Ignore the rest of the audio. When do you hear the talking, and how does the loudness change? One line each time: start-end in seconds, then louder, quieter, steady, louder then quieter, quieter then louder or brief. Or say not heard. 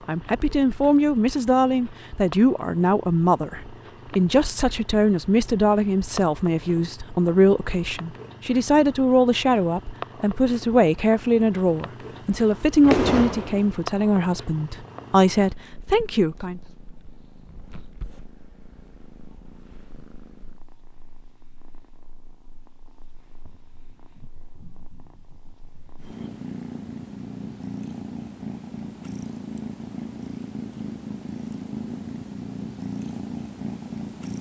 0.1-16.6 steady.